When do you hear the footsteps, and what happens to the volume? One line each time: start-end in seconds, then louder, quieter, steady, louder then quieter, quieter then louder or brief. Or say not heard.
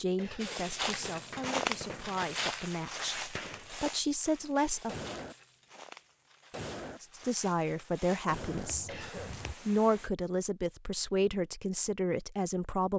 0.3-9.6 quieter.